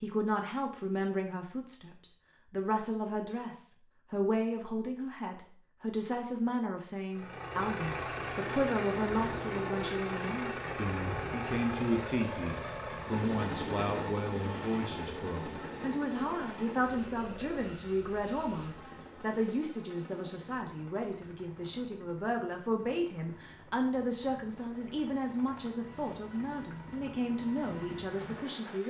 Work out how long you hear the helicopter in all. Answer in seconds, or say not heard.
22 s.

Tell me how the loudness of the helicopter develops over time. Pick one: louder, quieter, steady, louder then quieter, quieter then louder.
quieter then louder.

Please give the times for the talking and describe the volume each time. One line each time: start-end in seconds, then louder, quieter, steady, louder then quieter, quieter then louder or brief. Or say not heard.
0.0-28.8 steady.